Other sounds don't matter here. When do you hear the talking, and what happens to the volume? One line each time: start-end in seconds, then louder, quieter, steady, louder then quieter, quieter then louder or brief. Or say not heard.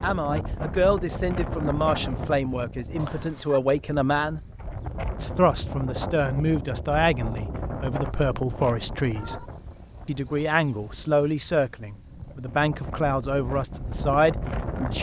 0.0-4.4 quieter then louder
5.2-9.4 steady
10.1-14.9 steady.